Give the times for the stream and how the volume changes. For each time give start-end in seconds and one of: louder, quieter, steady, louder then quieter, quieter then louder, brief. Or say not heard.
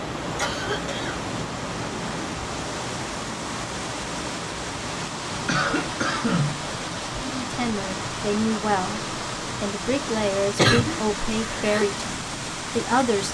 0.0-13.2 steady.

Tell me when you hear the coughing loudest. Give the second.
11 s.